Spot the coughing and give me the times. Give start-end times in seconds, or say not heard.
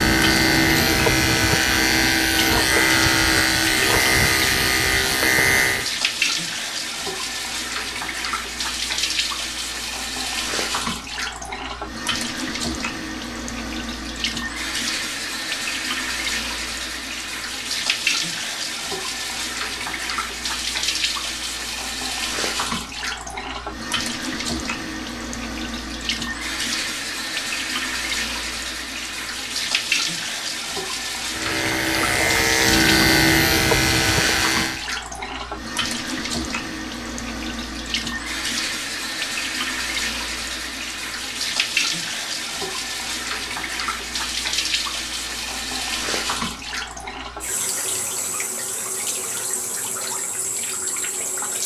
not heard.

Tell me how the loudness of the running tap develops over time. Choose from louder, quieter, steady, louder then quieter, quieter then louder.
steady.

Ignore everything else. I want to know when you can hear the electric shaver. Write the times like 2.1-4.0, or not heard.
0.0-5.9, 31.2-34.9.